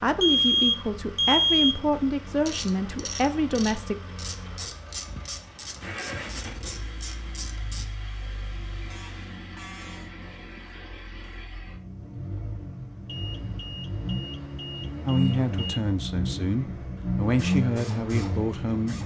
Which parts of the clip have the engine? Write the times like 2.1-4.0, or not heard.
0.0-19.0.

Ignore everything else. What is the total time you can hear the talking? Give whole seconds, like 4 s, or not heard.
8 s.